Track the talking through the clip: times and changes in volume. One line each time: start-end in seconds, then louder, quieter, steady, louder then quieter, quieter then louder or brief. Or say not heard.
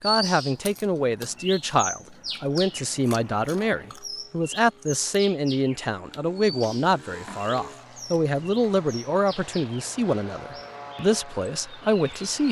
0.0-12.4 steady.